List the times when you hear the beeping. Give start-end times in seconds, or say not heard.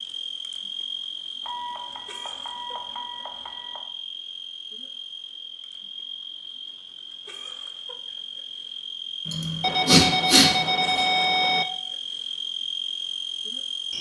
1.4-3.8, 9.6-11.7.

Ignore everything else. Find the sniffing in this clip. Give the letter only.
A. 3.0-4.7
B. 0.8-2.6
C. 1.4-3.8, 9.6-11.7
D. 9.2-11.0
D.